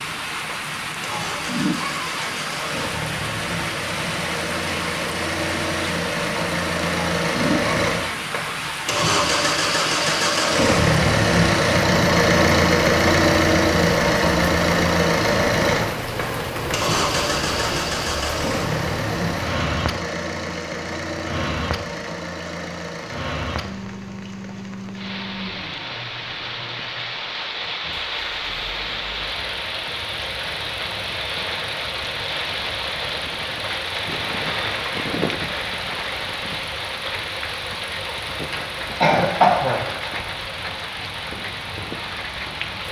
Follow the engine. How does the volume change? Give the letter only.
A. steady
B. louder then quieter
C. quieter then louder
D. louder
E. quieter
B.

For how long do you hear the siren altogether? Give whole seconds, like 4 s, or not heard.
not heard.